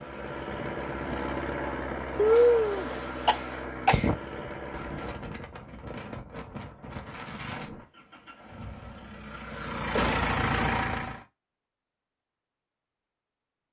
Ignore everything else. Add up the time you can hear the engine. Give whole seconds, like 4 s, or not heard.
9 s.